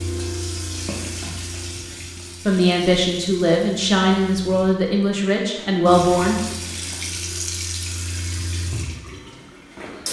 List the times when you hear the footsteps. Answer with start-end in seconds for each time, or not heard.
not heard.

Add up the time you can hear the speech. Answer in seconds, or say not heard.
4 s.